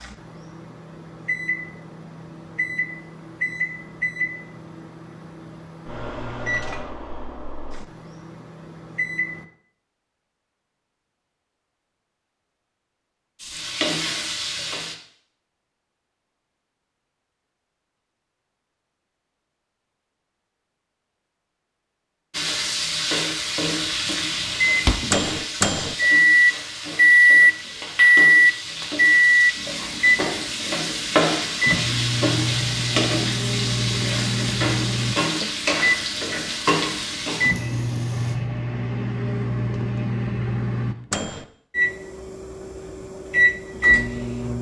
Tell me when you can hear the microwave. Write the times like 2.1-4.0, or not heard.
0.0-9.4, 23.9-44.5.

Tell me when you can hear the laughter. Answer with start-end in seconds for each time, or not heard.
not heard.